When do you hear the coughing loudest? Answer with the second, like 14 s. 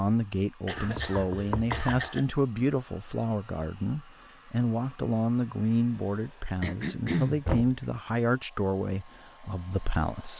7 s.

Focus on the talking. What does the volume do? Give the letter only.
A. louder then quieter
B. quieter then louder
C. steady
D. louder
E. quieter
C.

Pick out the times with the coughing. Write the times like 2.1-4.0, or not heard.
0.7-2.4, 6.6-7.4.